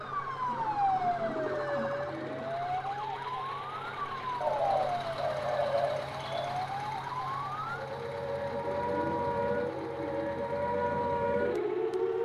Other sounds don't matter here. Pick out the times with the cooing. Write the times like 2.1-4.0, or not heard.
0.5-2.5, 4.4-6.5, 8.7-10.4.